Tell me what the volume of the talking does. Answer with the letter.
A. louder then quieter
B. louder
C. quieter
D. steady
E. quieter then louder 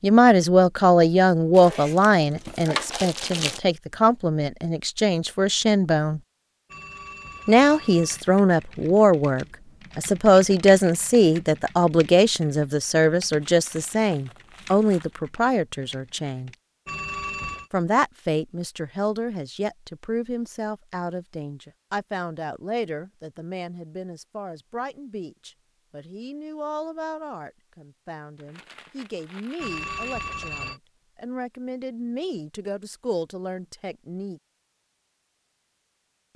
C.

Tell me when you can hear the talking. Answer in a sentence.
The talking can be heard from 0.0 to 6.2 s, from 7.5 to 16.5 s and from 17.7 to 34.4 s.